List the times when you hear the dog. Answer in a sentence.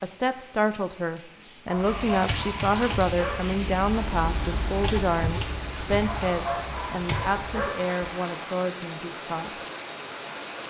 The dog can be heard from 1.6 to 3.5 s and from 6.0 to 8.0 s.